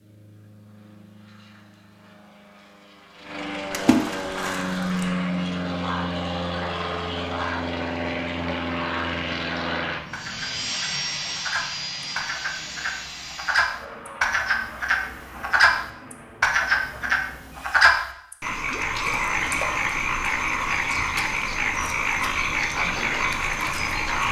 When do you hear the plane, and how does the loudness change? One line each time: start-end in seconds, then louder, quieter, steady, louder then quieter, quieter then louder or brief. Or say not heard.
0.0-17.9 louder then quieter.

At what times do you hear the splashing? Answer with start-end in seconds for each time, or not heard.
3.7-5.1.